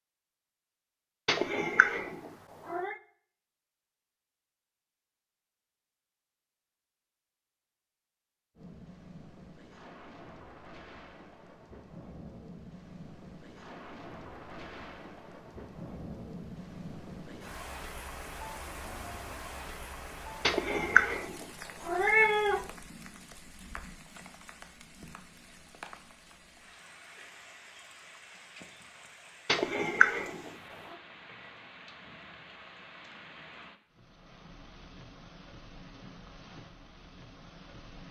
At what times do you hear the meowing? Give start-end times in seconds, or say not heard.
1.2-3.0, 20.4-22.6, 29.4-30.5.